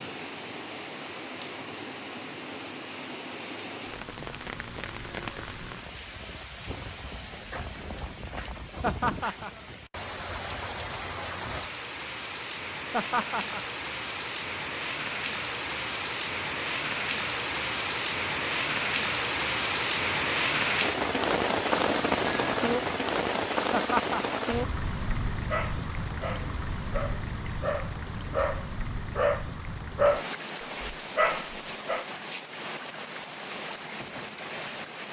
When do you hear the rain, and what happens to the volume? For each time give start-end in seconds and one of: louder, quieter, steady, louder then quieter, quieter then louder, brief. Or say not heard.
0.0-35.0 louder then quieter.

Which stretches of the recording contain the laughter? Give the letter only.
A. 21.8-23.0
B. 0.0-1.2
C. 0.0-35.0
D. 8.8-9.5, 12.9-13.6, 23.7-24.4
D.